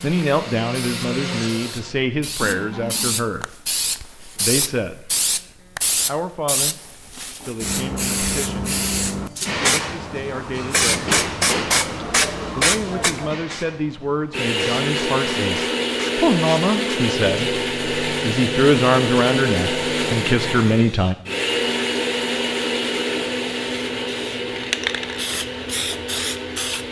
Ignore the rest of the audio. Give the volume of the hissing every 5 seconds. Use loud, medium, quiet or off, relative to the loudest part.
medium, loud, loud, quiet, medium, medium.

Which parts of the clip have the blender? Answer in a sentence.
You can hear the blender from 0.0 to 3.2 s and from 14.3 to 26.8 s.